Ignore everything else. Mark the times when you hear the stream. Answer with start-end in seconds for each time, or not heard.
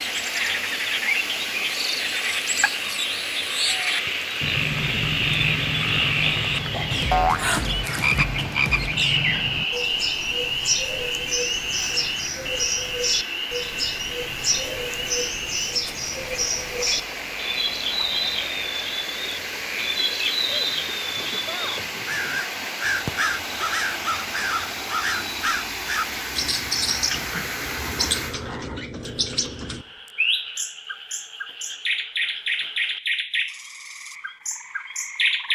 0.0-28.4.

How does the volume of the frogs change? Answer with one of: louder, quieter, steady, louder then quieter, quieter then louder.
quieter.